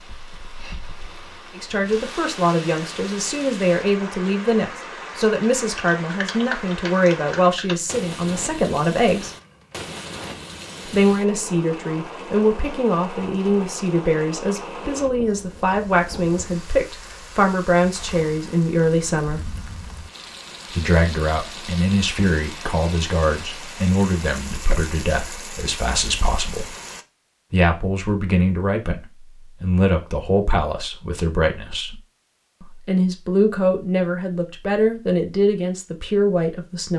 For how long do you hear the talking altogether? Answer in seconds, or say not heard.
31 s.